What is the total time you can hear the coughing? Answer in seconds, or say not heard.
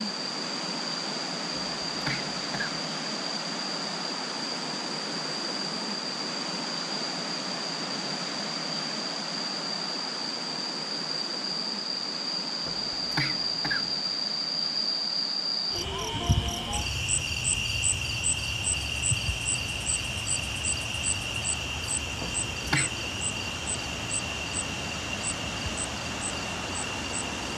3 s.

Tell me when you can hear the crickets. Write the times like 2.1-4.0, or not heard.
0.0-27.5.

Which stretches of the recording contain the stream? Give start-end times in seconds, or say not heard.
0.0-27.5.